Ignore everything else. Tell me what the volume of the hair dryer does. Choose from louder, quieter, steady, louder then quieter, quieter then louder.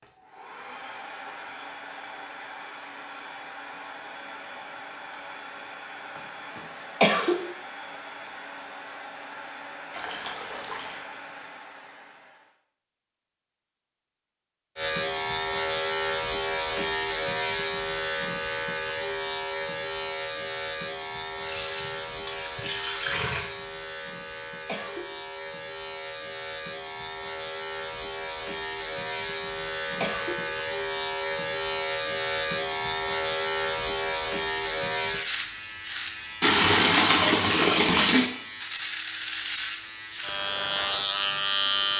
steady.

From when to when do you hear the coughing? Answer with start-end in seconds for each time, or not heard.
6.5-7.4, 24.2-25.1, 29.6-30.4.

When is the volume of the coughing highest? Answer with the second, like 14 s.
7 s.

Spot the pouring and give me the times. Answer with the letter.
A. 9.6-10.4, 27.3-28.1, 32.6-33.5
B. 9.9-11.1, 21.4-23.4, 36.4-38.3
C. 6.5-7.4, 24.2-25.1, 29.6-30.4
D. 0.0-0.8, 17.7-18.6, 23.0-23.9
B.